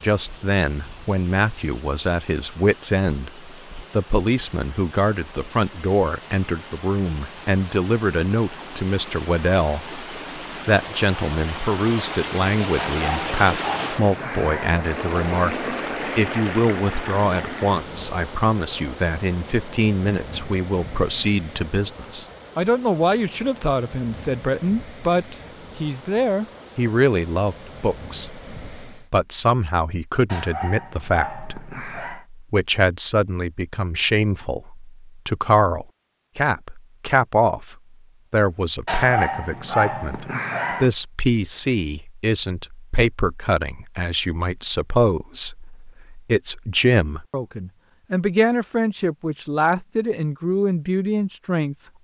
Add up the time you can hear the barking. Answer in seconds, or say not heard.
6 s.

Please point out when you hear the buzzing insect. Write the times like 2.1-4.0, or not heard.
not heard.